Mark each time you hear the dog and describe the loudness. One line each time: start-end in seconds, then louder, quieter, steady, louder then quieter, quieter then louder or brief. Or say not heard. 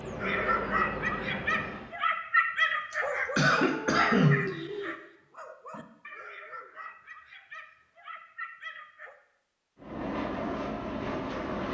0.2-9.2 quieter.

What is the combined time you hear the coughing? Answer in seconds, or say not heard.
2 s.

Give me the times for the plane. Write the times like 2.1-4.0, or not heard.
0.0-1.9, 9.8-11.6.